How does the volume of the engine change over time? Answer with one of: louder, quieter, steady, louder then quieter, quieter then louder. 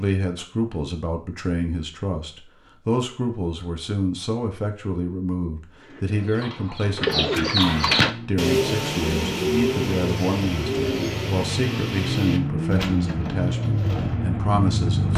louder.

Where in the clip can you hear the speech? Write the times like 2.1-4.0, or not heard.
0.0-15.1.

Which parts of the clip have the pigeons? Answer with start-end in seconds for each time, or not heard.
5.8-14.2.